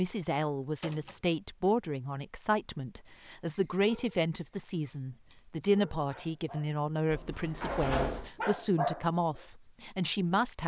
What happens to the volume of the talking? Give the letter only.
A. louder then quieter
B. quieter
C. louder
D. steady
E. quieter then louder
D.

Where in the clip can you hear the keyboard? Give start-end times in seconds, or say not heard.
not heard.